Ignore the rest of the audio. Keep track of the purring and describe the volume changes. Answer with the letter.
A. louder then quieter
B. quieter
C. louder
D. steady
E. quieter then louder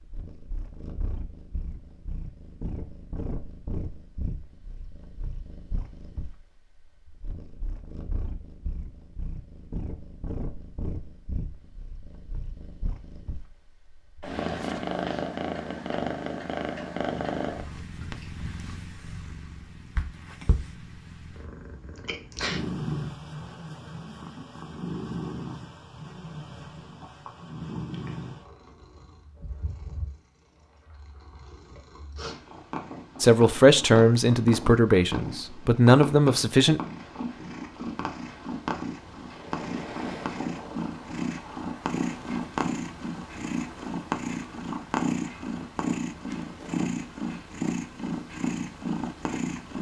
C.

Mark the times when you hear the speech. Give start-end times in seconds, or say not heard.
33.2-36.8.